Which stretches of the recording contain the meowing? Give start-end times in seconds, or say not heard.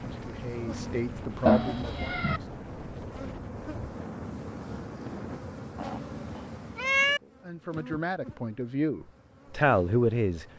1.4-2.4, 5.8-7.2.